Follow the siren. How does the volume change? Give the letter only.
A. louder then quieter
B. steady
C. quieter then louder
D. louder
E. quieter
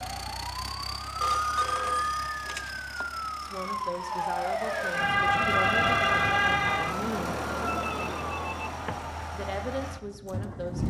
A.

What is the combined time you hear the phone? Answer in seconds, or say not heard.
3 s.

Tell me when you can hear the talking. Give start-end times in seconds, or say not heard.
3.4-7.5, 9.3-10.8.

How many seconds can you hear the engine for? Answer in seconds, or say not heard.
11 s.